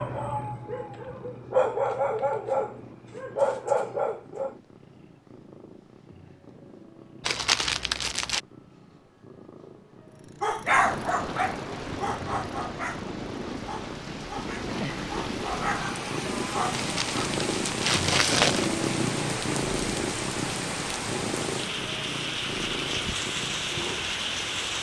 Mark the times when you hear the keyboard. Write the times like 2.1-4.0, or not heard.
not heard.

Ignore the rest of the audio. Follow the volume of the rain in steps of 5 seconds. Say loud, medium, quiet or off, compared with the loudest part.
off, off, medium, loud, loud.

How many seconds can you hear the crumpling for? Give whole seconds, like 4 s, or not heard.
3 s.